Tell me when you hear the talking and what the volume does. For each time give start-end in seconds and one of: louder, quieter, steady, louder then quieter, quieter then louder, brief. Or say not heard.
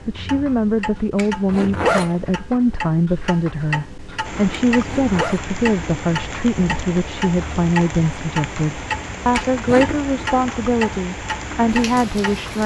0.1-12.6 steady.